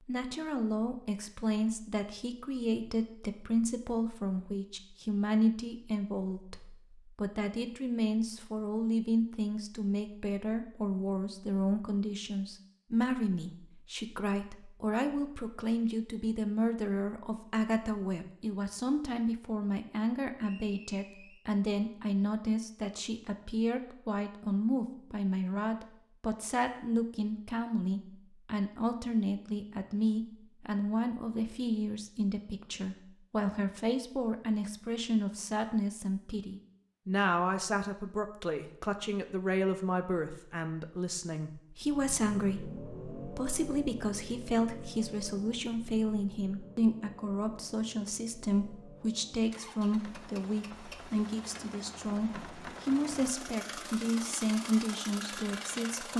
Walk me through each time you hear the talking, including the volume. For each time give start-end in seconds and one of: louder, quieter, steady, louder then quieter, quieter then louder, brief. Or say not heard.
0.1-56.1 steady.